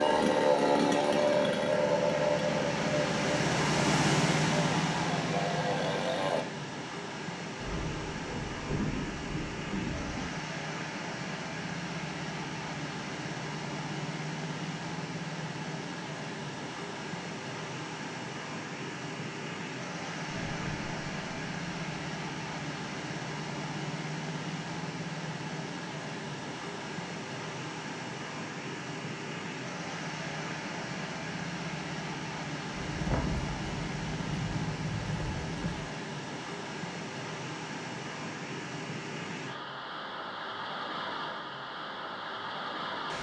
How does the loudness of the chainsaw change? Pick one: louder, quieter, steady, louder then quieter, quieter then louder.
quieter.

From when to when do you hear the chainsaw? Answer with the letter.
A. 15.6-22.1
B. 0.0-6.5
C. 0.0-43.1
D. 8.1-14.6
B.